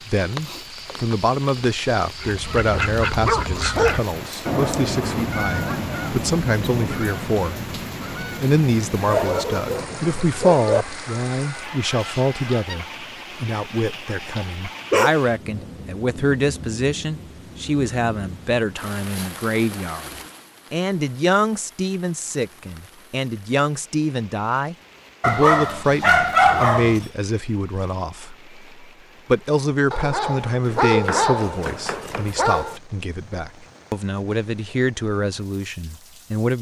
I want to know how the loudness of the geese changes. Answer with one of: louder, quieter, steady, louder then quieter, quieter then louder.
quieter.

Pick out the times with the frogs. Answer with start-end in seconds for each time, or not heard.
not heard.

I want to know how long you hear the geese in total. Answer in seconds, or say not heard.
11 s.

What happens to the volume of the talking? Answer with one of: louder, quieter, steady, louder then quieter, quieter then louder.
steady.